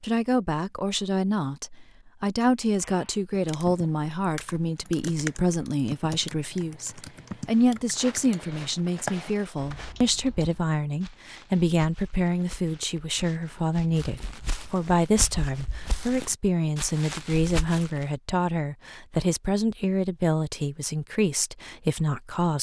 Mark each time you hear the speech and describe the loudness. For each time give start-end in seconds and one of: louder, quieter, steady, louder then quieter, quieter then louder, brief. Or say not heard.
0.0-22.5 steady.